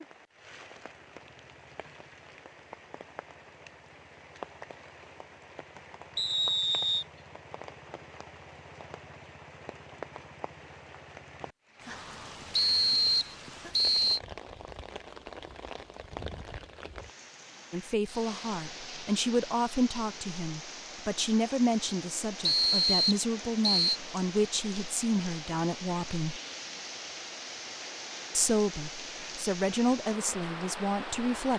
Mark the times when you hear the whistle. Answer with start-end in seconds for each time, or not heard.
6.2-7.0, 12.5-14.2, 22.4-24.0.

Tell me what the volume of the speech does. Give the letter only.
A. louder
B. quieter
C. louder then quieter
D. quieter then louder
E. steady
E.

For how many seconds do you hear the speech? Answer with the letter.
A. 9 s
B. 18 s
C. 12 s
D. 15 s
C.